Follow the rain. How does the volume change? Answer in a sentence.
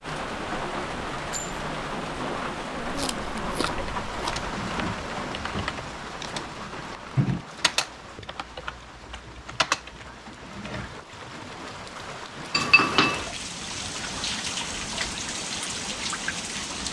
The loudness of the rain goes down, then up.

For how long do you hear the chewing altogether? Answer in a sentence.
You can hear the chewing for 2 seconds altogether.